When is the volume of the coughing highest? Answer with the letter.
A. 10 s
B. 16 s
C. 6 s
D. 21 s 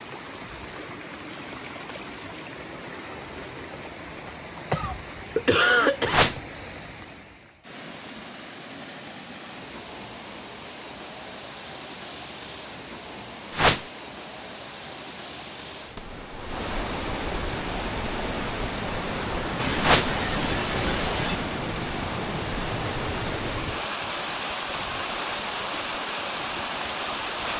C.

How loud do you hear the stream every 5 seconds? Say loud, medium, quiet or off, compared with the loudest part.
medium, medium, medium, loud, loud, loud.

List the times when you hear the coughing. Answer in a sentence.
The coughing can be heard from 4.2 to 6.2 s and from 19.6 to 21.4 s.